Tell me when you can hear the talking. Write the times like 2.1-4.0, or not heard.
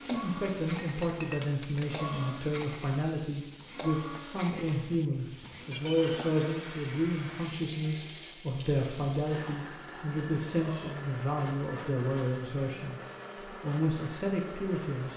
0.0-13.0, 13.6-15.1.